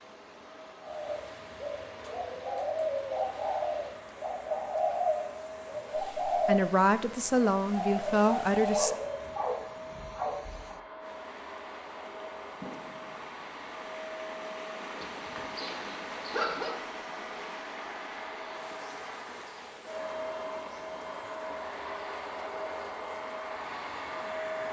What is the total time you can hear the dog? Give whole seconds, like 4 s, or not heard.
4 s.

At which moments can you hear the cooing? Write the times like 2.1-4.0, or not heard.
0.8-9.3.